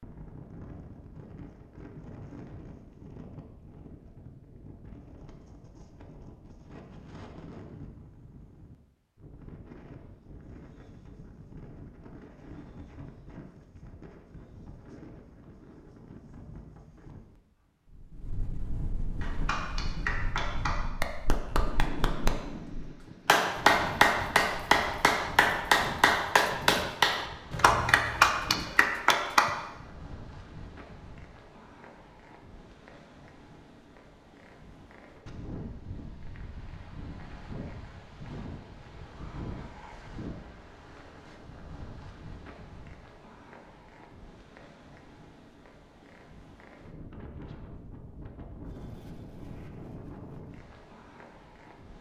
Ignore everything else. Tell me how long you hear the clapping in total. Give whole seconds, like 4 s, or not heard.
10 s.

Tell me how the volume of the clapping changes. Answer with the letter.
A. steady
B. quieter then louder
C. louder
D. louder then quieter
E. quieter
C.